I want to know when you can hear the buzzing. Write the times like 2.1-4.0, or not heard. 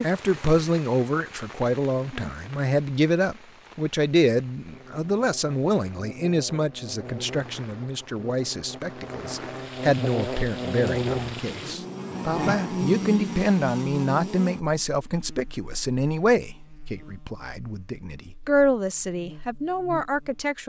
4.7-20.5.